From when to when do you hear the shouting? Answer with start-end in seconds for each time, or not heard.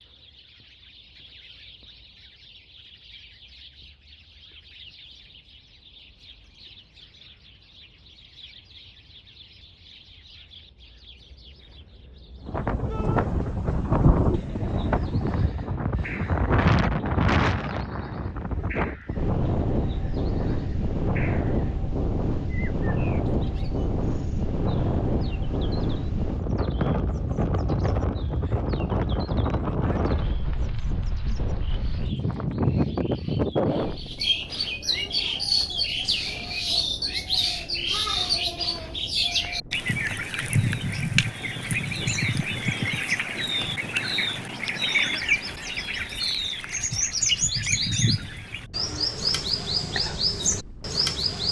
12.9-13.3.